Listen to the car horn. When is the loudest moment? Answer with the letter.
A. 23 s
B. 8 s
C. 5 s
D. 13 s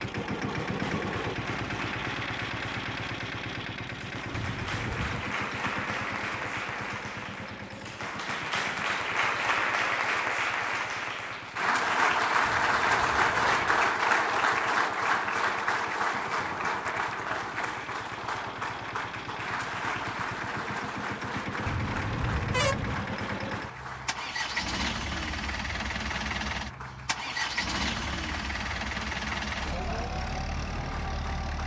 A.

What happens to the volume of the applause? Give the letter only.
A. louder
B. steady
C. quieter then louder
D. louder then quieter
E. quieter
D.